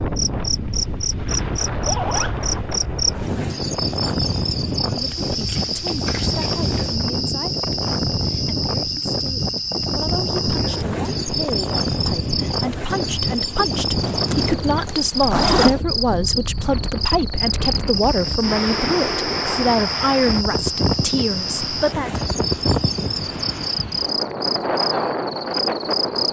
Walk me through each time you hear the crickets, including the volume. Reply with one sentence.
The crickets can be heard from 0.0 to 26.2 s, at a steady volume.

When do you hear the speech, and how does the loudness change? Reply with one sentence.
You can hear the speech from 4.9 to 22.1 s, getting louder.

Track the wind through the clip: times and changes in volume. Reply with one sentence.
The wind can be heard from 0.0 to 26.2 s, at a steady volume.